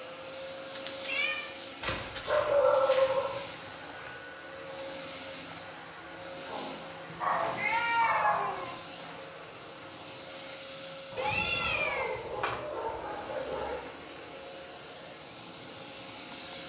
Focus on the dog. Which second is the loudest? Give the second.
3 s.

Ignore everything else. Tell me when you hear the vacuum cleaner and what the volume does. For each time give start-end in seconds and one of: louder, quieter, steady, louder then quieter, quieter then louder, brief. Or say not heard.
0.0-16.6 steady.